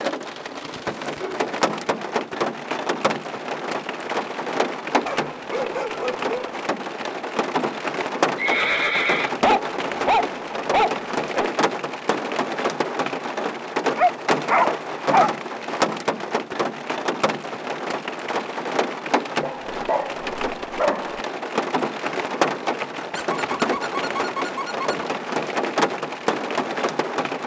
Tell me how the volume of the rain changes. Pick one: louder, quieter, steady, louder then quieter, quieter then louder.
steady.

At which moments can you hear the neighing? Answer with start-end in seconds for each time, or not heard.
8.3-9.3.